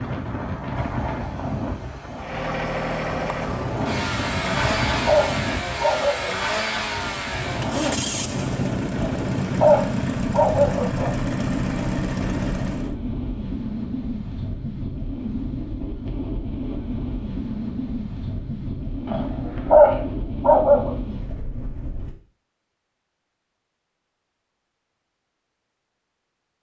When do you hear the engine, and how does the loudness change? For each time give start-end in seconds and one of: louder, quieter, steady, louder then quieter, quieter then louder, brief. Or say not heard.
2.1-12.9 steady.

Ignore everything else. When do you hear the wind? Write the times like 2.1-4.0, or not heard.
0.0-22.1.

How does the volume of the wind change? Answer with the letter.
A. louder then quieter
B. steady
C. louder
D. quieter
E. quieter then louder
B.